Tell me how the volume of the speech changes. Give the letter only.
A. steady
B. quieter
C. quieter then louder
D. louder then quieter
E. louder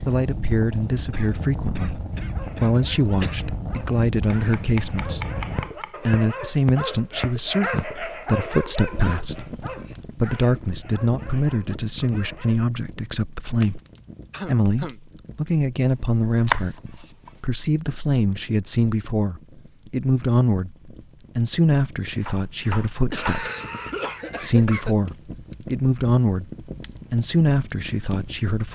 A.